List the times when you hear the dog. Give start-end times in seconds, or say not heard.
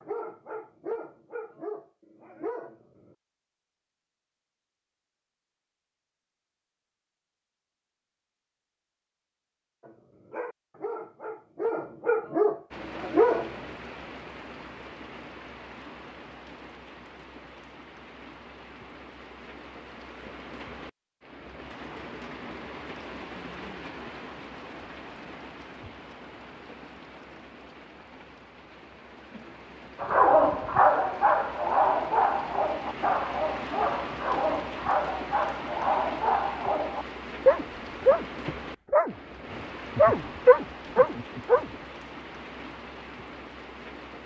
0.0-3.1, 9.8-13.5, 30.0-41.7.